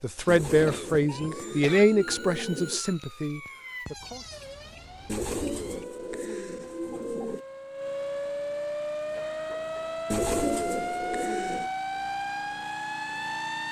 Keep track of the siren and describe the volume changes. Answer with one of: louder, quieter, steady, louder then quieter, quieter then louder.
louder.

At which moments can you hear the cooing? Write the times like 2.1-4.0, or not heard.
0.2-2.9, 5.0-7.5, 10.1-11.7.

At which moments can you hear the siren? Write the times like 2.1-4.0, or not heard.
0.0-13.6.